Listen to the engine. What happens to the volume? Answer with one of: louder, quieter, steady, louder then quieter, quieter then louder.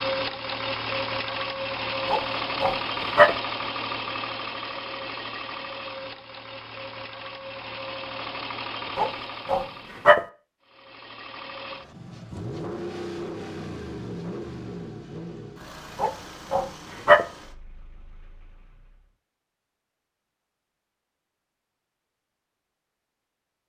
quieter.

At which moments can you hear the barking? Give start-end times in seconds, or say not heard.
2.0-3.4, 8.9-10.2, 16.0-17.2.